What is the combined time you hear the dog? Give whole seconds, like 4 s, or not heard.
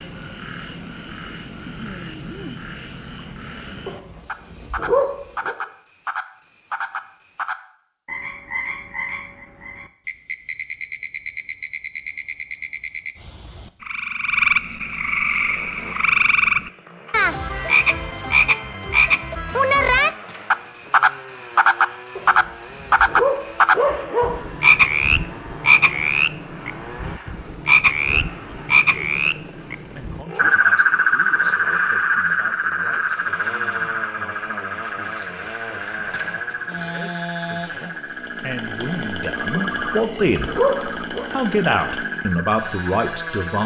6 s.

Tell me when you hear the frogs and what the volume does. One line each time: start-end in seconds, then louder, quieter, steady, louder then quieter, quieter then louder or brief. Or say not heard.
0.0-43.6 louder then quieter.